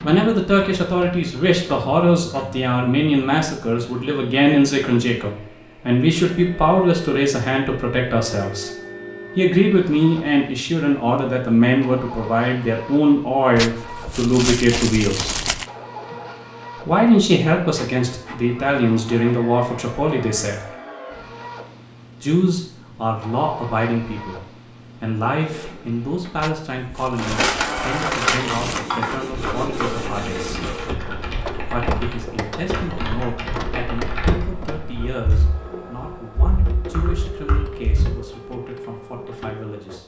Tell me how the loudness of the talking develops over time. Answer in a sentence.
The loudness of the talking goes down.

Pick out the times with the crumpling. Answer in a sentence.
You can hear the crumpling from 13.6 to 15.7 s and from 26.4 to 28.9 s.